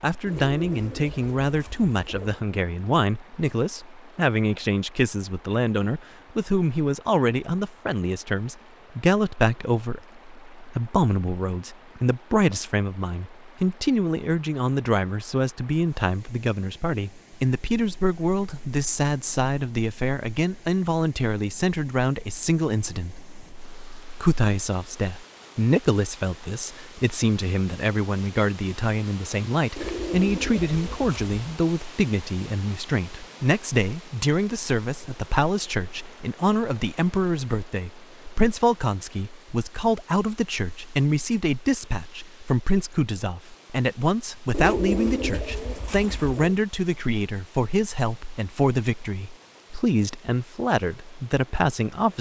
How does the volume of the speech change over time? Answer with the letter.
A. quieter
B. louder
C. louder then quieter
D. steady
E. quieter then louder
D.